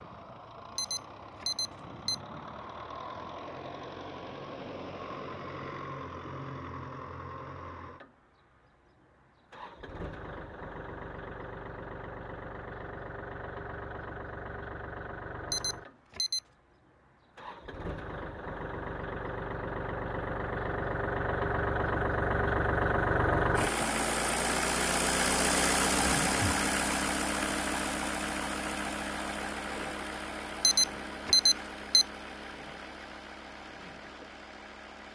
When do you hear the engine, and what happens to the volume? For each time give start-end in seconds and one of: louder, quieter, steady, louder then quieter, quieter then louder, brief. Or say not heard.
0.0-35.1 louder then quieter.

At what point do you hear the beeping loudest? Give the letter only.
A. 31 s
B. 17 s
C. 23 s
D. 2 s
A.